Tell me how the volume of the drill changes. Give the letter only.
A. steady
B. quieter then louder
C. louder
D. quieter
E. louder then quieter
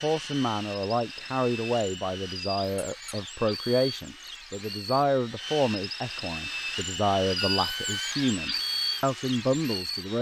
C.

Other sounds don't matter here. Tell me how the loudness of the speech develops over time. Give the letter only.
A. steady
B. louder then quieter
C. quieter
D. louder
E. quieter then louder
A.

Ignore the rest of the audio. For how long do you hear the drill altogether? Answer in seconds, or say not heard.
10 s.